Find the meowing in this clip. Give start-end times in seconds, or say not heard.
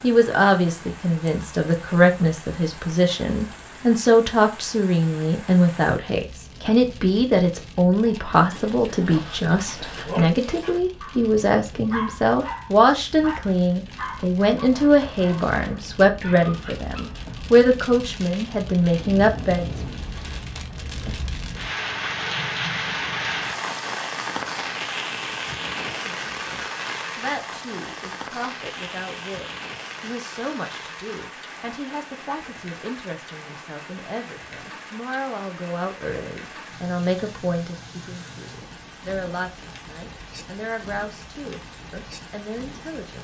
not heard.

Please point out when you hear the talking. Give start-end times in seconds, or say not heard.
0.0-19.6, 25.9-43.1.